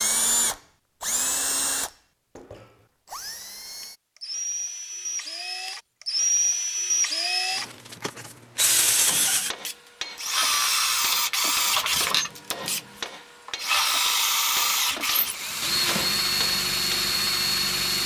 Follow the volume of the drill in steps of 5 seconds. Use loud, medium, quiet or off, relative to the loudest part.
medium, loud, loud, loud.